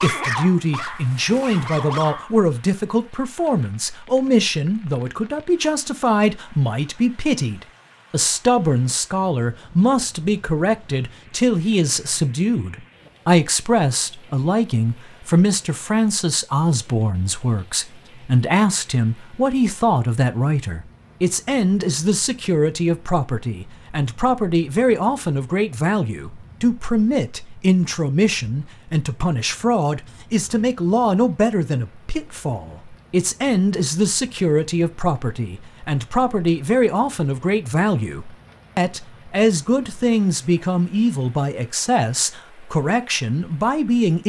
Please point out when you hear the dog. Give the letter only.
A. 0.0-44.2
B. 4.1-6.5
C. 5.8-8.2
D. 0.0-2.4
D.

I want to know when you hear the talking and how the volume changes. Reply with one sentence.
The talking can be heard from 0.0 to 44.2 s, at a steady volume.